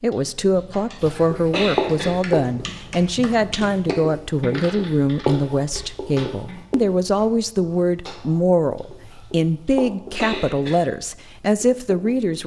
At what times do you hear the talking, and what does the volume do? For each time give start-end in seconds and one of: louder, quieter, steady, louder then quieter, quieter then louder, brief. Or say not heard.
0.0-12.4 steady.